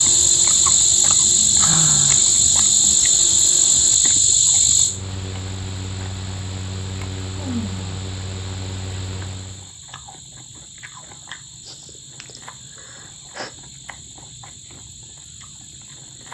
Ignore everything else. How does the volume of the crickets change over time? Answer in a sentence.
The loudness of the crickets goes down.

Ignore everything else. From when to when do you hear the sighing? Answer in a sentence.
The sighing can be heard from 1.6 to 2.2 s, from 7.3 to 8.0 s and from 11.7 to 13.5 s.